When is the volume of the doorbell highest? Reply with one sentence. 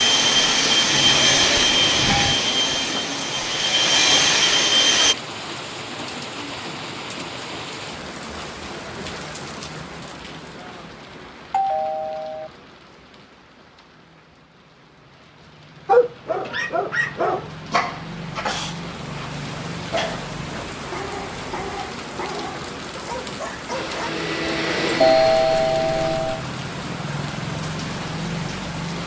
The loudest moment of the doorbell is at 25 seconds.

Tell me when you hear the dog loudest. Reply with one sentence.
The volume of the dog peaks at 16 seconds.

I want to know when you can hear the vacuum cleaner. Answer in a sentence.
The vacuum cleaner can be heard from 0.0 to 5.2 s and from 23.7 to 26.2 s.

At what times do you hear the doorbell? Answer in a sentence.
The doorbell can be heard from 0.9 to 2.4 s, from 11.5 to 12.5 s and from 25.0 to 26.4 s.